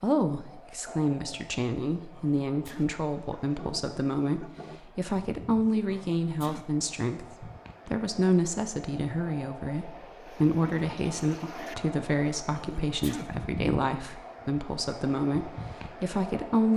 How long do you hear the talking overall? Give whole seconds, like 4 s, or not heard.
17 s.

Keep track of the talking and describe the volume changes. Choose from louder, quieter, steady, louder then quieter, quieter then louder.
steady.